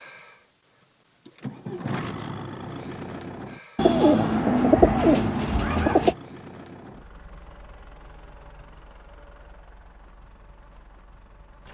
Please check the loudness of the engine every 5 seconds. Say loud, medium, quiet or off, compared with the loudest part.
loud, medium, quiet.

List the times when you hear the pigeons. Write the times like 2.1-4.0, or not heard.
3.8-6.2.